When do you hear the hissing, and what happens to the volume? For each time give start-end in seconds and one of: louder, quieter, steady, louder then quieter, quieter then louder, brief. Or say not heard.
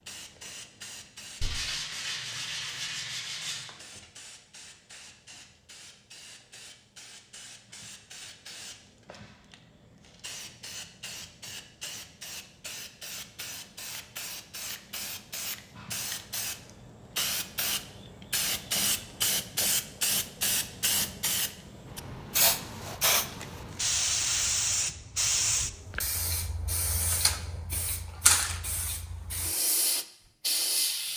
0.0-31.1 louder.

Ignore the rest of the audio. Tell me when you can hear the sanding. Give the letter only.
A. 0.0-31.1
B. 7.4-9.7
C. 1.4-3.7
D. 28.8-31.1
C.